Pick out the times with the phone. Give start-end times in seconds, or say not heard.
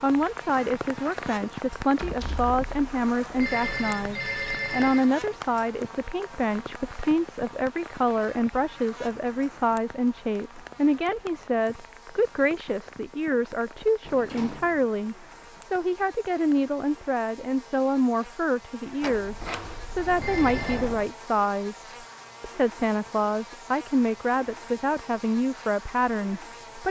3.4-5.1, 20.1-20.9.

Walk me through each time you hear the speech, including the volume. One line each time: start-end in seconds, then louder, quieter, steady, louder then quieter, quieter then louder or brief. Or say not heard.
0.0-26.8 steady.